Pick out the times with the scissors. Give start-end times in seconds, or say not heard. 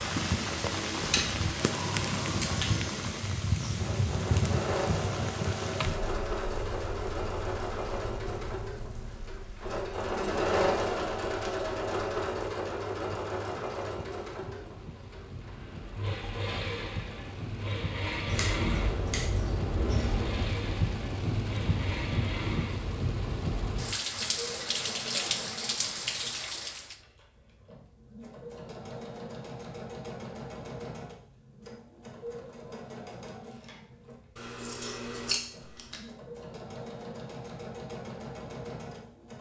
1.0-2.7, 18.2-20.3, 34.4-36.0.